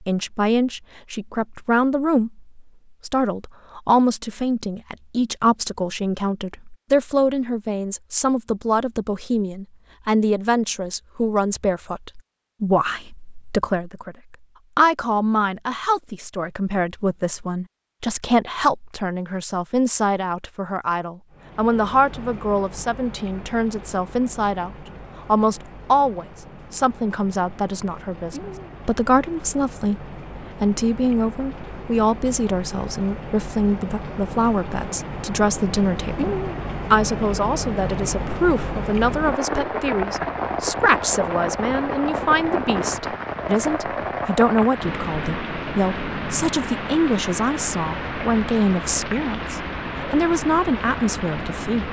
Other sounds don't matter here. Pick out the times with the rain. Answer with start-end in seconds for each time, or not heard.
21.3-51.8.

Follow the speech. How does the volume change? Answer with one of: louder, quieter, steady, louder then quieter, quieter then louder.
steady.